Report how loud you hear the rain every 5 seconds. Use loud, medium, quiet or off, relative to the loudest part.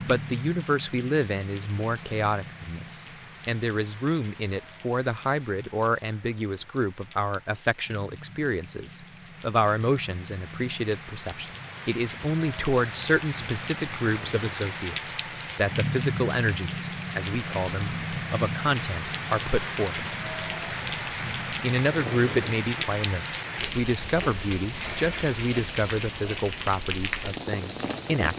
medium, quiet, medium, loud, loud, loud.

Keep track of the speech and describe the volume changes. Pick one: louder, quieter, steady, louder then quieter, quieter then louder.
steady.